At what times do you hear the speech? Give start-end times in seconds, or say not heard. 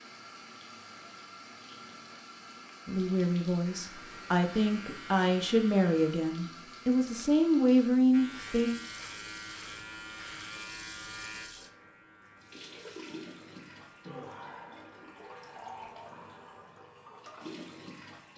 2.9-8.7.